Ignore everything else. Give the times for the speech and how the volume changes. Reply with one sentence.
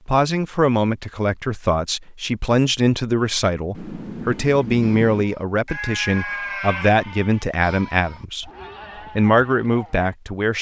You can hear the speech from 0.1 to 8.5 s, at a steady volume; and briefly from 9.2 to 10.5 s.